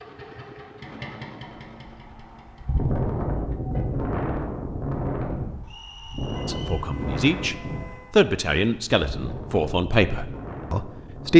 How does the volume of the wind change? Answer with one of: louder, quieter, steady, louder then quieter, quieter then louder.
quieter.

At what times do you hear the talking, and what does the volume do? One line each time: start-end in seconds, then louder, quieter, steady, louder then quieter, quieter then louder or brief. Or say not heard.
6.5-11.3 louder then quieter.